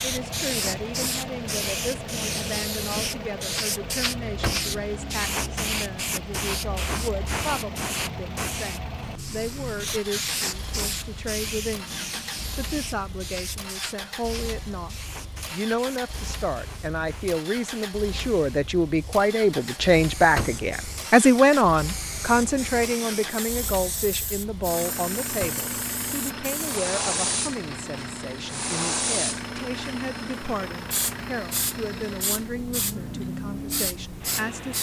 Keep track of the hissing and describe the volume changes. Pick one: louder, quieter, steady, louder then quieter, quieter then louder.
quieter then louder.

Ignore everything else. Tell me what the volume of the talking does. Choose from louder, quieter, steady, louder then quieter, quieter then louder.
louder then quieter.